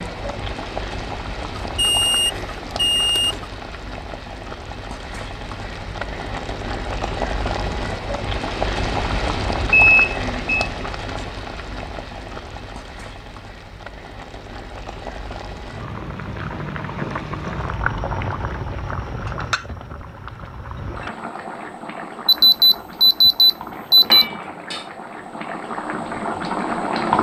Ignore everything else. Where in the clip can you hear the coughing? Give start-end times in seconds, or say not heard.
not heard.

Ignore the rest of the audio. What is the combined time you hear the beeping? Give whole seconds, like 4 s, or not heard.
5 s.